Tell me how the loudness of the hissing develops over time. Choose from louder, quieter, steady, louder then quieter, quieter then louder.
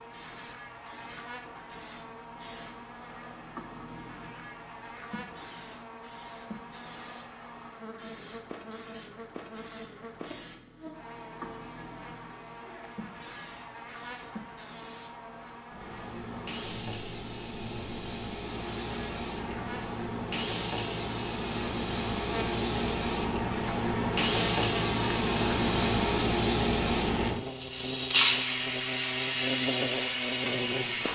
louder.